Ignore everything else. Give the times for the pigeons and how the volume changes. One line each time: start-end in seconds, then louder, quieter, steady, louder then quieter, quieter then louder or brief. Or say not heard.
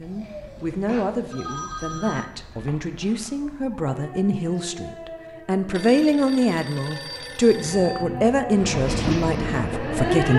not heard.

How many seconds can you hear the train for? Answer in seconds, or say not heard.
2 s.